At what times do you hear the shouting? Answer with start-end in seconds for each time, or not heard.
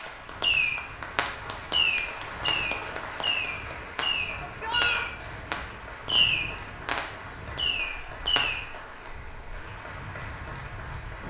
4.4-5.0.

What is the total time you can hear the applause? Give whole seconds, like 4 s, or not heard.
11 s.